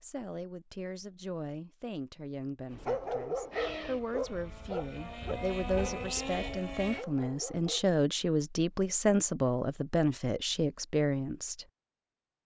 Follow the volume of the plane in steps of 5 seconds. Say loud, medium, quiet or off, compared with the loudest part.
loud, loud, off.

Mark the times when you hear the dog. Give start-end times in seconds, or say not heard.
2.7-8.0.